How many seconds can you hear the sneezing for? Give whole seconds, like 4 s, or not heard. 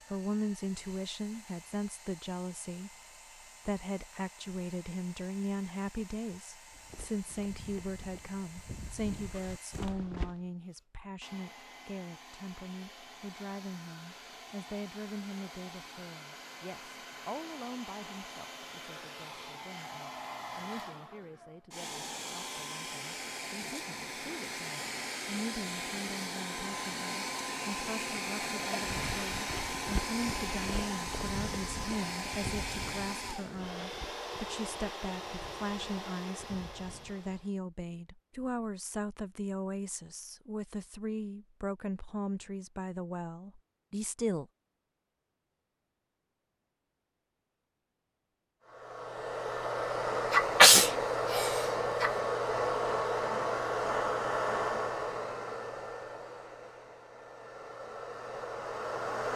2 s.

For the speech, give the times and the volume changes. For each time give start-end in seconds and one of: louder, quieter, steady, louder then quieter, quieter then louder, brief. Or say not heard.
0.1-2.9 brief
3.6-44.5 quieter then louder.